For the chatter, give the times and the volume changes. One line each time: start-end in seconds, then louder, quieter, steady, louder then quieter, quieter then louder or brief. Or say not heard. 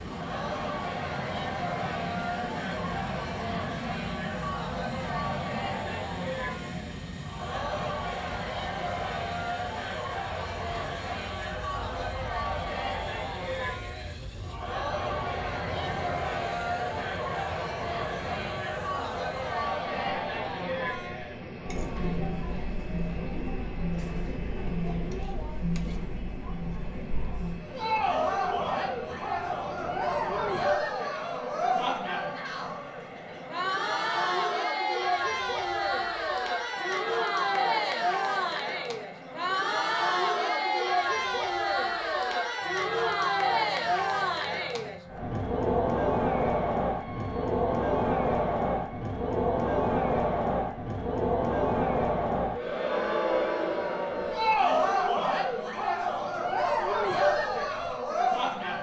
0.0-58.7 louder.